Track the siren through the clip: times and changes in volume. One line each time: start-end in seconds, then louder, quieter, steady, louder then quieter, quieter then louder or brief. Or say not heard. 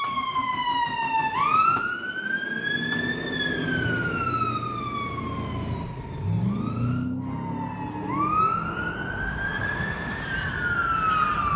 0.0-11.5 quieter then louder.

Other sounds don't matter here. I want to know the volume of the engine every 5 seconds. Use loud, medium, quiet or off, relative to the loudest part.
medium, loud, medium.